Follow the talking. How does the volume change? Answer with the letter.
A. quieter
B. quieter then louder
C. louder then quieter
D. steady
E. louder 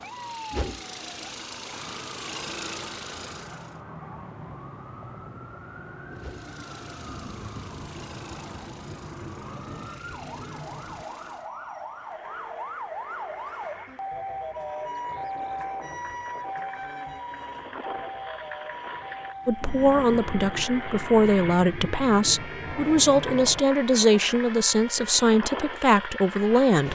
D.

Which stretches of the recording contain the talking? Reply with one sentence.
The talking can be heard from 19.4 to 26.9 s.